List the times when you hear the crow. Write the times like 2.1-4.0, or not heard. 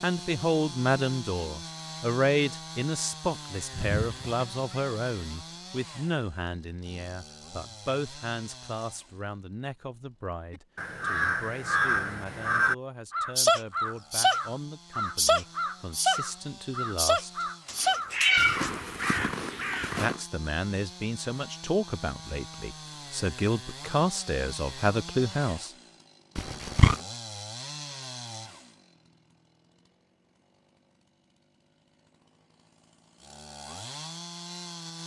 10.5-20.2.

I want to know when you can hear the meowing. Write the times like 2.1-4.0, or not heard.
3.7-4.8, 17.6-18.7, 26.4-26.9.